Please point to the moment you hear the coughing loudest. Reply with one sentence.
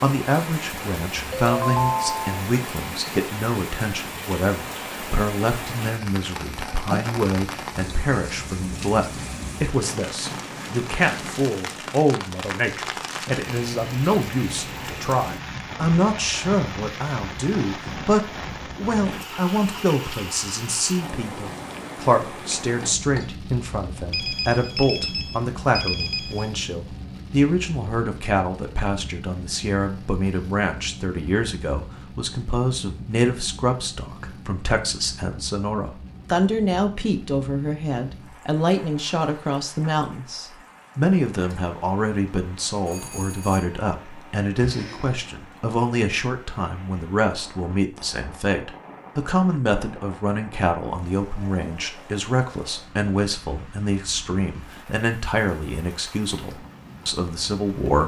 The loudest moment of the coughing is at 7 seconds.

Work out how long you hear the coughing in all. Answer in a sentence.
You can hear the coughing for 2 seconds altogether.